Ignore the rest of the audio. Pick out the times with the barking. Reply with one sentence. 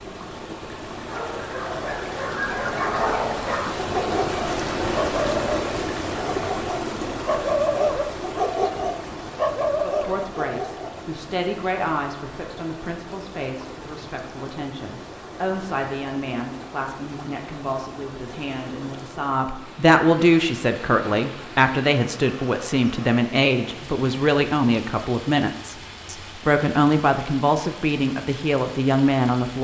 The barking can be heard from 0.9 to 11.0 s.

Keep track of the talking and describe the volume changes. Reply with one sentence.
The volume of the talking goes up.